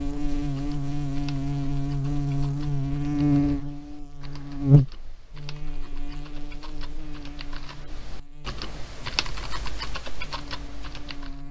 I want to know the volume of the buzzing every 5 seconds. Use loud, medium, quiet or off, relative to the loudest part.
loud, quiet, quiet.